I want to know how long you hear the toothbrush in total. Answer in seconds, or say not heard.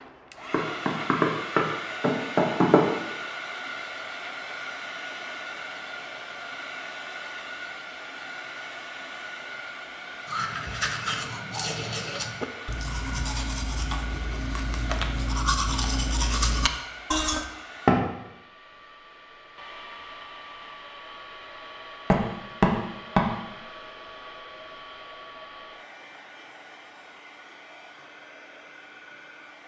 7 s.